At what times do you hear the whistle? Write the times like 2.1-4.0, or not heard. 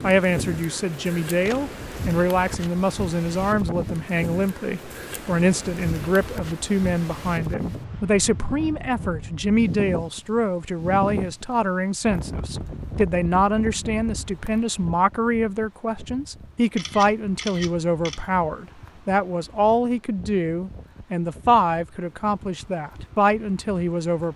not heard.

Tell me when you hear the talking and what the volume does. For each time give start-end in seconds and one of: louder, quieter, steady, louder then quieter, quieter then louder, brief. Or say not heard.
0.0-24.3 steady.